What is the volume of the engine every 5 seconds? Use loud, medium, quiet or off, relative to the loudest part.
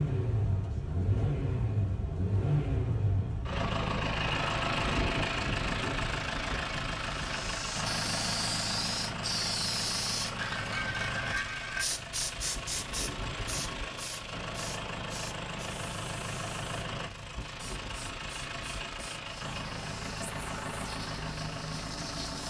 loud, loud, medium, medium, medium.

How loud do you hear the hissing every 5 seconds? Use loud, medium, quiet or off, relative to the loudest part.
off, loud, loud, quiet, medium.